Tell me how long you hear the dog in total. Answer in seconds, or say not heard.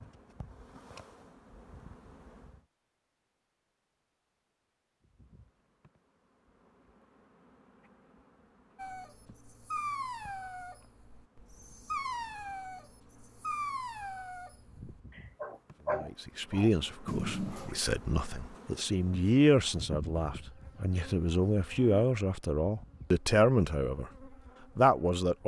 9 s.